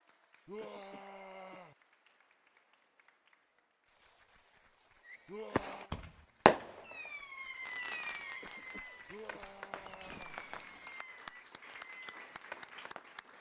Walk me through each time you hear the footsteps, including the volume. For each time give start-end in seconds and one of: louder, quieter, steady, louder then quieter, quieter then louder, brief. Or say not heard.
not heard.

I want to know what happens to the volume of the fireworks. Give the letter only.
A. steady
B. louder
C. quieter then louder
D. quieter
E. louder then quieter
D.